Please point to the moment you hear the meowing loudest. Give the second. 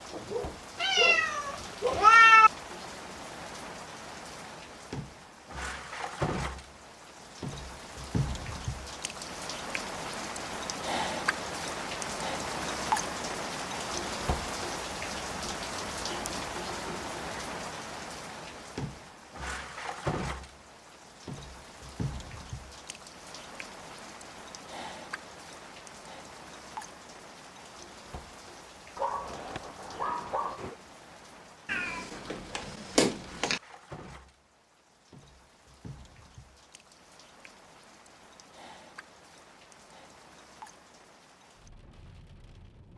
2 s.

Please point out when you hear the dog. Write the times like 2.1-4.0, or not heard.
0.1-2.1, 28.9-30.8.